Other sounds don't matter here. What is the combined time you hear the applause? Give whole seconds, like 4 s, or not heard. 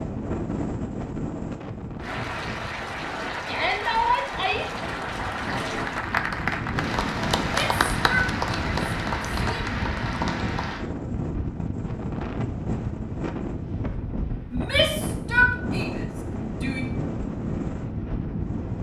9 s.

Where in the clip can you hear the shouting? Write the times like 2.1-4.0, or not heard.
3.5-4.7, 7.5-9.8, 14.5-16.9.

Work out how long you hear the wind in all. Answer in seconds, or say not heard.
19 s.